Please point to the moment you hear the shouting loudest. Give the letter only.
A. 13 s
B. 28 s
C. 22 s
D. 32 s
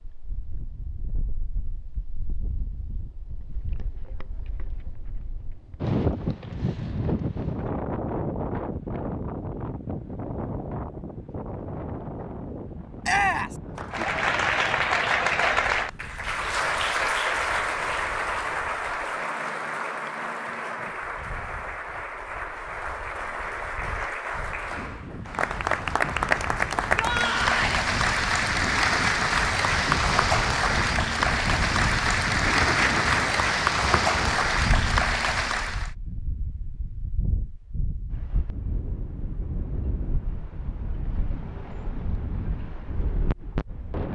A.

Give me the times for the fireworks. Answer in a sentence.
The fireworks can't be heard in this clip.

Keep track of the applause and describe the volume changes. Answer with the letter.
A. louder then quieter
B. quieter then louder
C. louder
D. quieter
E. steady
B.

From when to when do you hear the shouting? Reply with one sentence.
You can hear the shouting from 13.0 to 13.6 s and from 26.8 to 27.8 s.